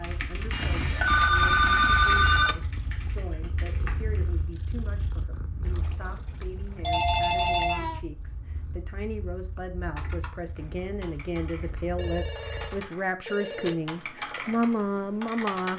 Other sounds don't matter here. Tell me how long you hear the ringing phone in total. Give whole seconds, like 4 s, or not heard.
6 s.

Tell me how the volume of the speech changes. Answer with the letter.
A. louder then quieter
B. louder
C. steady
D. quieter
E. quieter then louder
B.